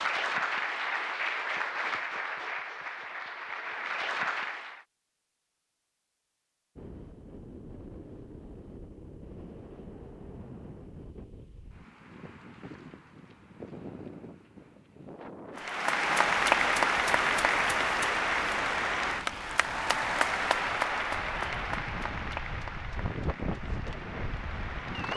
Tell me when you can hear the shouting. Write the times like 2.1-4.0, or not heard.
not heard.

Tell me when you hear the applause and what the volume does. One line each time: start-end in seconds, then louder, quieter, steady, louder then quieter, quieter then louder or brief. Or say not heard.
0.0-4.8 quieter then louder
15.6-25.1 quieter.